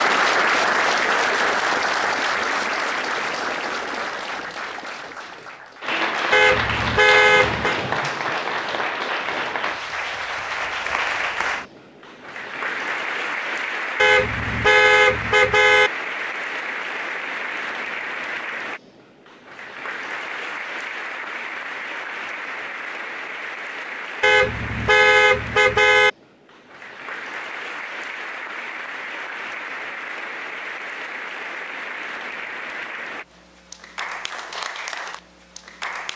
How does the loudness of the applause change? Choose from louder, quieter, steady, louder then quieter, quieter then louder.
quieter.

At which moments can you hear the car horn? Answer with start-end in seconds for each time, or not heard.
6.3-7.8, 13.9-15.9, 24.2-26.1.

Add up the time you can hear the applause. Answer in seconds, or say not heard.
36 s.